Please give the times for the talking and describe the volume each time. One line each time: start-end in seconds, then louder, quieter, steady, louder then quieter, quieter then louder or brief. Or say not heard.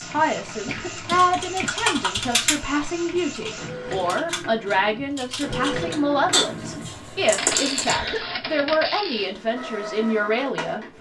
0.0-10.9 steady.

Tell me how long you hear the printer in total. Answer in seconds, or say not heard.
11 s.